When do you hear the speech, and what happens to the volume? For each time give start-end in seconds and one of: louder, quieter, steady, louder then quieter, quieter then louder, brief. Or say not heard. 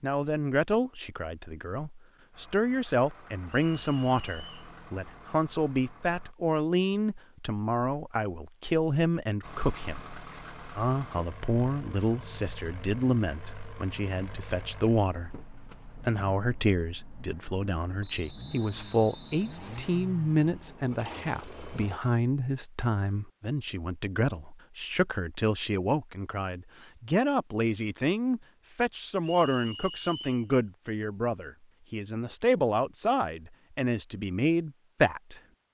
0.0-35.4 steady.